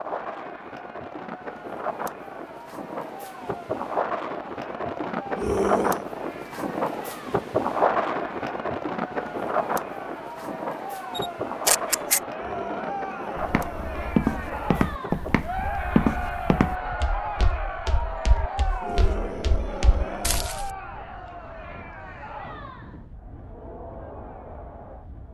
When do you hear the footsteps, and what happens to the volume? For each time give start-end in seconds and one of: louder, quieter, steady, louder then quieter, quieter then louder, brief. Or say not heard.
13.3-20.7 quieter.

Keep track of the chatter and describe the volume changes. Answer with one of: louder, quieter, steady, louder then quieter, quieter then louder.
louder then quieter.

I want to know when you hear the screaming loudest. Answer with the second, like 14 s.
6 s.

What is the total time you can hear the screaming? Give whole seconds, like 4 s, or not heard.
4 s.